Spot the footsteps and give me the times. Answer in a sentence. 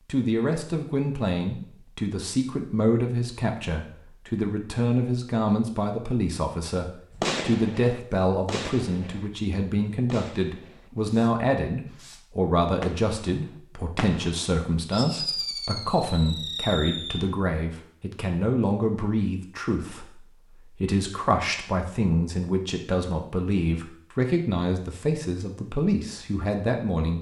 You can't hear the footsteps here.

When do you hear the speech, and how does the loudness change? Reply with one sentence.
You can hear the speech from 0.1 to 27.1 s, at a steady volume.